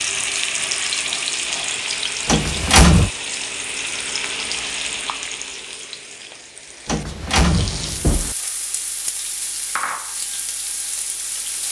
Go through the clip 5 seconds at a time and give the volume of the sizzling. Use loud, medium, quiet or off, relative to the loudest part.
loud, medium, medium.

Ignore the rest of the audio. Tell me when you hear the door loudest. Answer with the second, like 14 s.
3 s.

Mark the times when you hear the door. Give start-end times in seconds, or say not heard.
2.2-3.1, 6.8-8.3.